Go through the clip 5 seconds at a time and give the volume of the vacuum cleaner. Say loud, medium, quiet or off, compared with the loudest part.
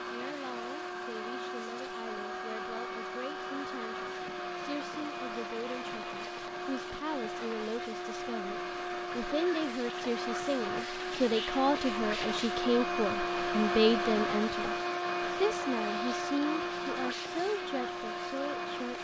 medium, medium, loud, loud.